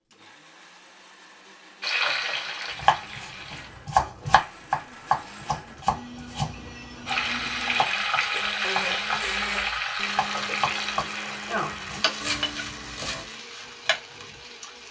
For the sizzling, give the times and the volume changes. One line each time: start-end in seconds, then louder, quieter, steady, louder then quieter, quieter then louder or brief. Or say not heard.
1.8-3.7 brief
7.0-14.8 quieter.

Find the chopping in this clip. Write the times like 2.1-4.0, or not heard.
2.8-13.2.